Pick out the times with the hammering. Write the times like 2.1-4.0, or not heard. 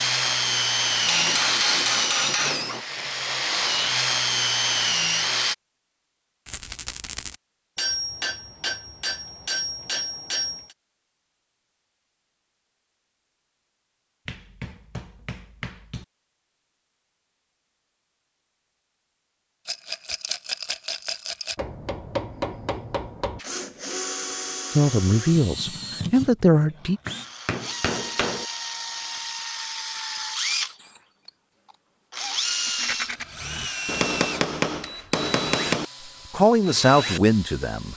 1.1-2.9, 7.8-10.8, 14.2-16.1, 21.6-23.4, 26.5-28.4, 33.9-35.9.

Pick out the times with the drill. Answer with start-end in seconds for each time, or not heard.
0.0-5.5, 23.4-37.9.